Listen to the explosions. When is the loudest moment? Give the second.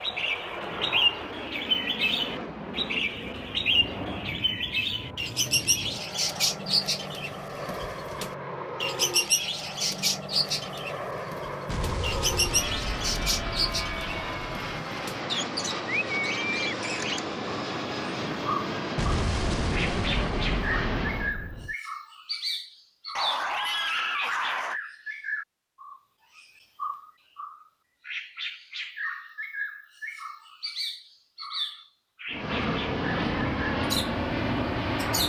19 s.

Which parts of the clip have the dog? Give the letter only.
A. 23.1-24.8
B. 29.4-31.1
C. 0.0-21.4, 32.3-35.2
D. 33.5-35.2
A.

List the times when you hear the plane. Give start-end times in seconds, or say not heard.
0.0-21.4, 32.3-35.2.